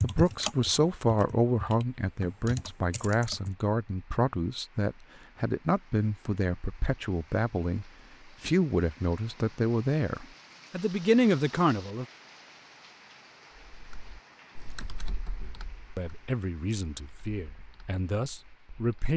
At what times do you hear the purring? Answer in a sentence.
The purring can't be heard in this clip.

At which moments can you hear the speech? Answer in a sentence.
You can hear the speech from 0.0 to 12.1 s and from 15.9 to 19.1 s.